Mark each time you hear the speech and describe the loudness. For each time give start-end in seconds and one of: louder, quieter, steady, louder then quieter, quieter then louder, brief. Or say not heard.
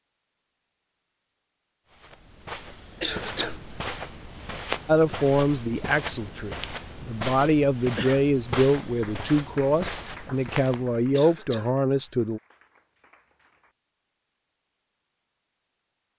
4.8-12.4 steady.